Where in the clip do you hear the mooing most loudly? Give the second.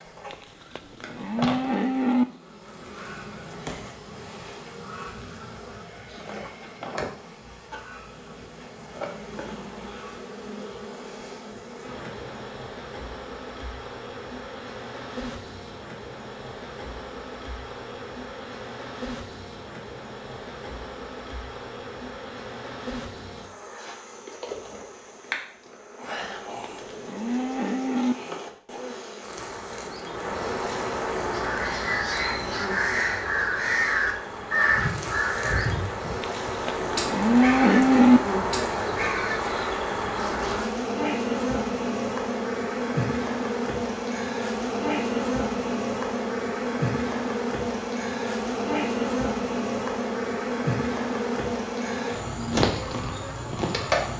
38 s.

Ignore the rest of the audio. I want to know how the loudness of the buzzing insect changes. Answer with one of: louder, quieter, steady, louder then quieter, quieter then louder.
louder.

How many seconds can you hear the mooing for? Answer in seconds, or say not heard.
6 s.